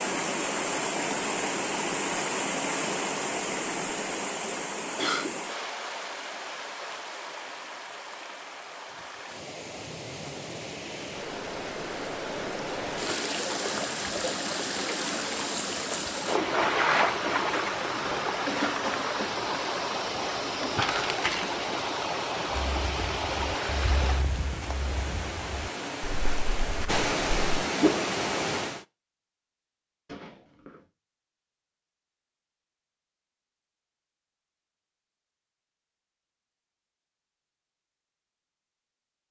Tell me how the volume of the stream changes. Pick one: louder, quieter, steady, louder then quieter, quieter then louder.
quieter then louder.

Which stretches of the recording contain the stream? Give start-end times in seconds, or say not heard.
0.0-28.9.